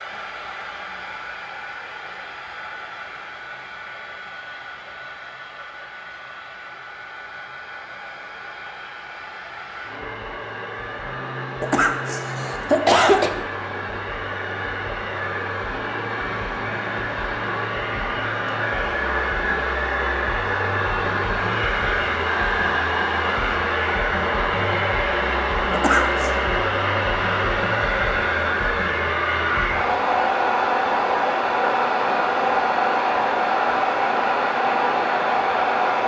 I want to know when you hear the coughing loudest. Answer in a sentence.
The loudest moment of the coughing is at 13 seconds.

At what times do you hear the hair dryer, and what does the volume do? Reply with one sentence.
You can hear the hair dryer from 0.0 to 36.0 s, getting louder.